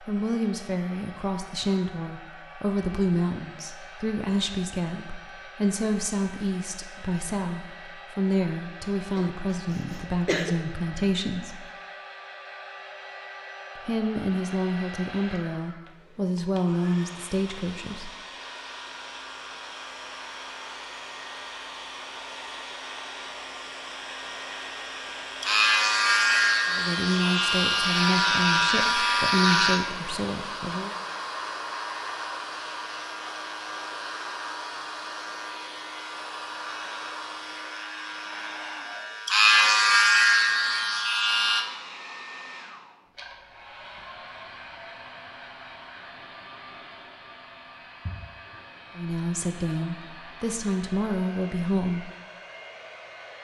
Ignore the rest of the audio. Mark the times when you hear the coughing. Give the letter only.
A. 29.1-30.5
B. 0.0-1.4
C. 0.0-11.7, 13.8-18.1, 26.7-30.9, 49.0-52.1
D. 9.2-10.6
D.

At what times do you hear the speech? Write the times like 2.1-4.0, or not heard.
0.0-11.7, 13.8-18.1, 26.7-30.9, 49.0-52.1.